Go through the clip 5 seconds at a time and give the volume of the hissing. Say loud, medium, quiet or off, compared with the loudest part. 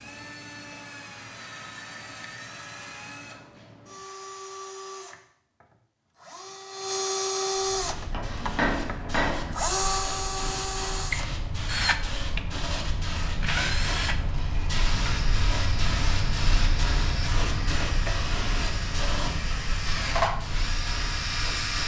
off, medium, loud, loud, medium.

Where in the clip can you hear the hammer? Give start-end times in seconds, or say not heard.
8.1-9.6.